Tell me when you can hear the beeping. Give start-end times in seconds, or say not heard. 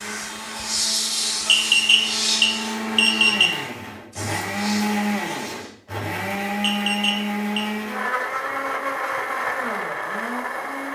1.4-3.5, 6.6-7.7.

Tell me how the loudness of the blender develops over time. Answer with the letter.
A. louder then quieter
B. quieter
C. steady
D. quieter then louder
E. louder
E.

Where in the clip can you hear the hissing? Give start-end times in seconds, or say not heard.
0.0-5.7.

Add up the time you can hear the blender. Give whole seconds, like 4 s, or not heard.
11 s.